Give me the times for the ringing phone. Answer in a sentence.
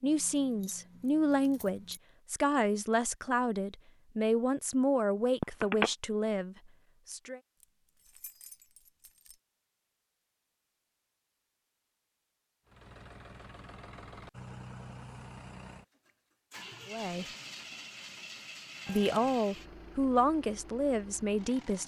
You can hear the ringing phone from 5.4 to 5.9 s.